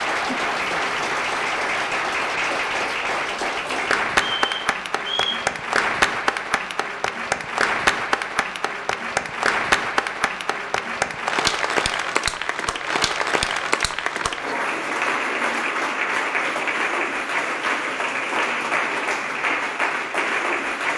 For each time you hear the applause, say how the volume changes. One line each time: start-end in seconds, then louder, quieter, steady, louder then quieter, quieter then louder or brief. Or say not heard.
0.0-20.9 steady.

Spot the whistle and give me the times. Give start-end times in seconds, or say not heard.
4.2-5.4.